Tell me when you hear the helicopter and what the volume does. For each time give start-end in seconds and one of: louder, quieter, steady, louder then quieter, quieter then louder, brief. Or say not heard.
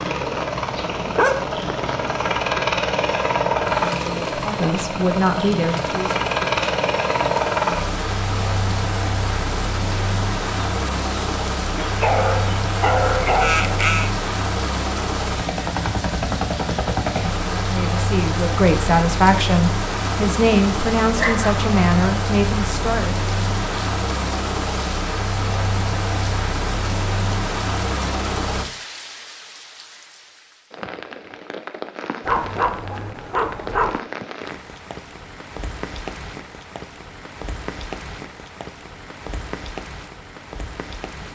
0.0-28.7 steady.